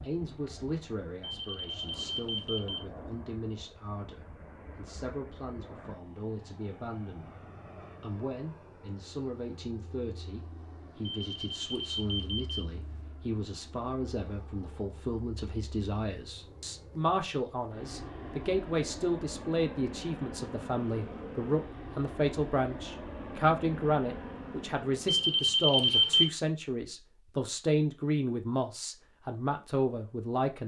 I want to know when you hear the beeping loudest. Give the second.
26 s.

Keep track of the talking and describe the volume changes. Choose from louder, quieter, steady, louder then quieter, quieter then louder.
louder.